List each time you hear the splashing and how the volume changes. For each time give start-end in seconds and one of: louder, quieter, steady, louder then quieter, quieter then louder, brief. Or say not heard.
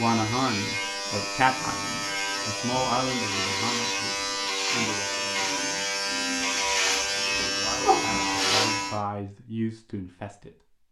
not heard.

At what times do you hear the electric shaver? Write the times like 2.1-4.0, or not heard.
0.0-9.0.